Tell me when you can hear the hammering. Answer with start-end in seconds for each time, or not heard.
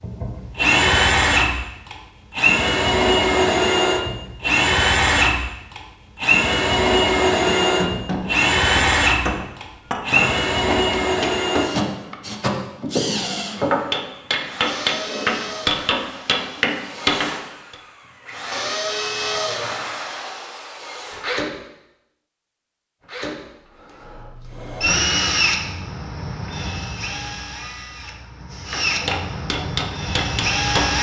7.5-17.8, 28.7-30.9.